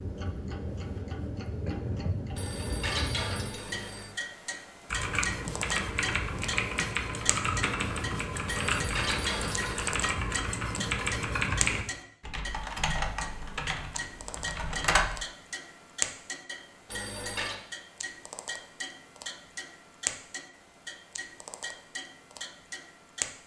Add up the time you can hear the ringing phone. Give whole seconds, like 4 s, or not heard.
4 s.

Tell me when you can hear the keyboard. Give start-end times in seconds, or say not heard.
4.8-15.1.